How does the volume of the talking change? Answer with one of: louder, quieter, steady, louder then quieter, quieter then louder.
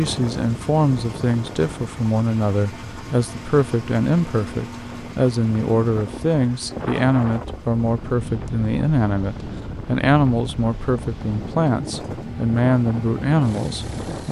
steady.